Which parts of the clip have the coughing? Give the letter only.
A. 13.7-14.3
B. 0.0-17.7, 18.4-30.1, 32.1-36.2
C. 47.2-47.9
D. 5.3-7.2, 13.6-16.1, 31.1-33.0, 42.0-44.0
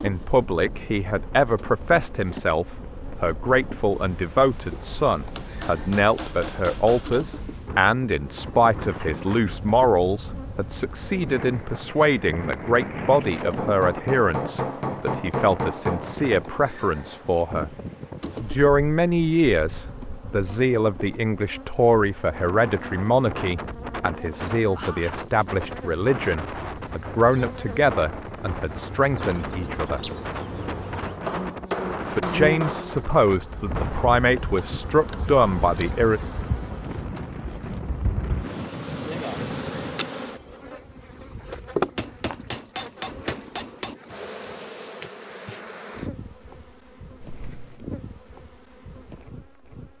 C.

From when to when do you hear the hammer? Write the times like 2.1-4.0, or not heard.
5.3-7.2, 13.6-16.1, 31.1-33.0, 42.0-44.0.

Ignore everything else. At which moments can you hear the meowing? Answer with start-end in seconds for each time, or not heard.
not heard.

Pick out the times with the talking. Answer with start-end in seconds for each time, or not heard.
0.0-17.7, 18.4-30.1, 32.1-36.2.